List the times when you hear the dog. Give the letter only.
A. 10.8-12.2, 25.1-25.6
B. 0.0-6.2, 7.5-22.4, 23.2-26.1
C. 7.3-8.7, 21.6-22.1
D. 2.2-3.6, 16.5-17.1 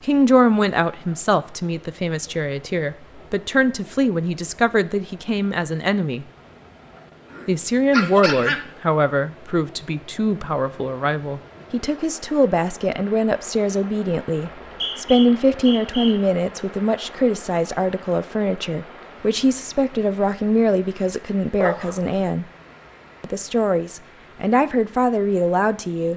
C.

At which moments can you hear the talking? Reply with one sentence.
The talking can be heard from 0.0 to 6.2 s, from 7.5 to 22.4 s and from 23.2 to 26.1 s.